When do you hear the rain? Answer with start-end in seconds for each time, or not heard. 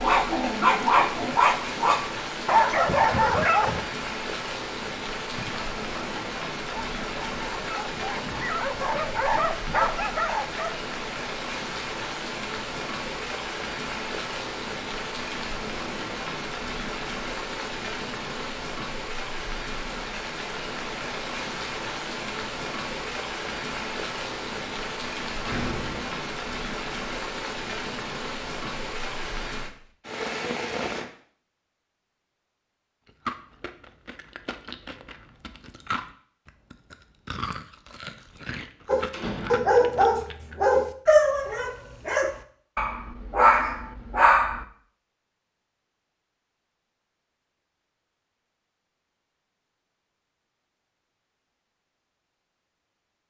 0.0-31.1.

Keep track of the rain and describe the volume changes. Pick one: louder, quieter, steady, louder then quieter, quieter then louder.
steady.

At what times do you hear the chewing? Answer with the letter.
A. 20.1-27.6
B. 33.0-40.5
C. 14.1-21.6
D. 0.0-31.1
B.